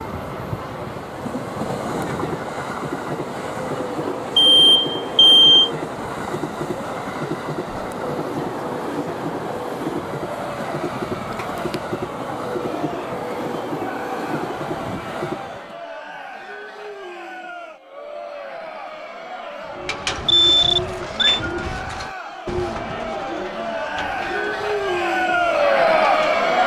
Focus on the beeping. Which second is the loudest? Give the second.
5 s.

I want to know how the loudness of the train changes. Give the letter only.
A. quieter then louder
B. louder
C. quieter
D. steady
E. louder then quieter
D.